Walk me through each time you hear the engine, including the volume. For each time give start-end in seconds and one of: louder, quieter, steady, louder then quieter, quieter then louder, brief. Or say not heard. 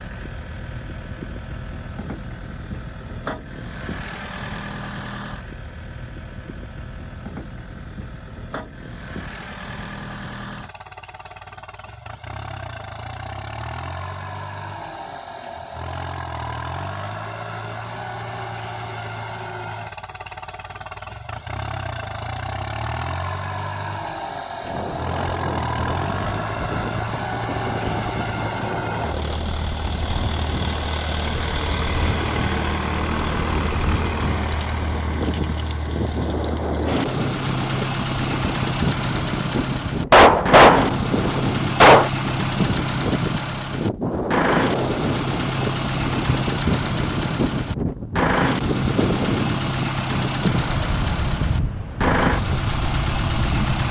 0.0-53.8 louder.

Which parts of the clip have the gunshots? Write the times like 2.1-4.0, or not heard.
40.1-42.1.